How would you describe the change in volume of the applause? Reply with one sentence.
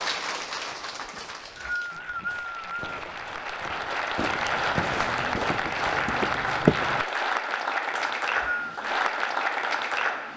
The volume of the applause goes up.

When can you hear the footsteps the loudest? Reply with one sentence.
The volume of the footsteps peaks at 7 seconds.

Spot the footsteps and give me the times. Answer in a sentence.
The footsteps can be heard from 4.3 to 7.0 s.